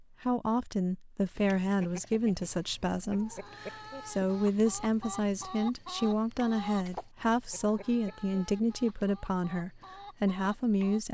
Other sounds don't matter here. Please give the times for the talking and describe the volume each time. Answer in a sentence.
The talking can be heard from 0.0 to 11.0 s, at a steady volume.